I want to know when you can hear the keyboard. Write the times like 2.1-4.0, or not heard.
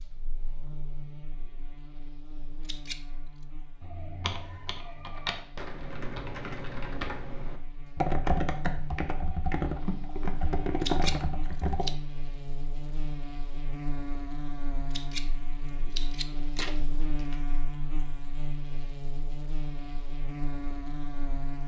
3.8-11.9.